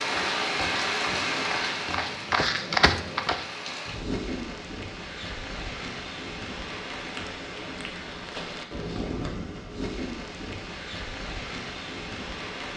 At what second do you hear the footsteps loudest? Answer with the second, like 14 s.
3 s.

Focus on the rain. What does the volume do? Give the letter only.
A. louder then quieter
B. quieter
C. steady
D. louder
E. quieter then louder
B.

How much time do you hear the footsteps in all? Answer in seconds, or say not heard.
4 s.